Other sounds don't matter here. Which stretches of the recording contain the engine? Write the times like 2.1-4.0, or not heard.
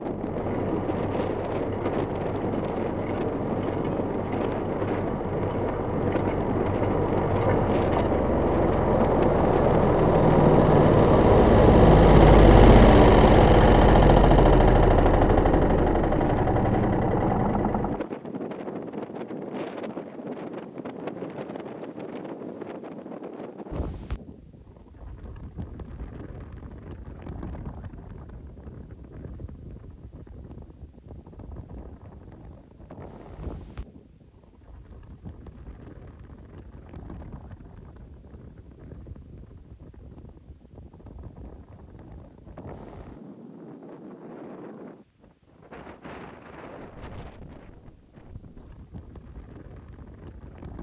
0.0-18.1.